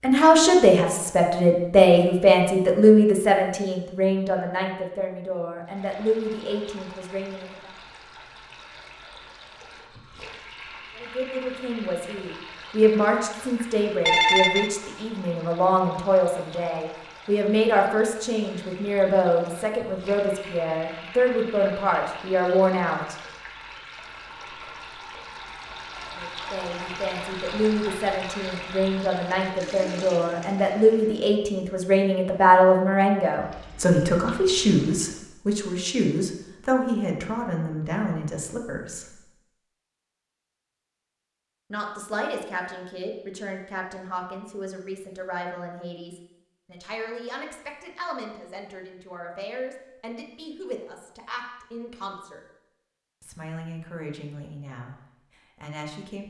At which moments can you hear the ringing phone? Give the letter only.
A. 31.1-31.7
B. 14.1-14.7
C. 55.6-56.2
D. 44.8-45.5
B.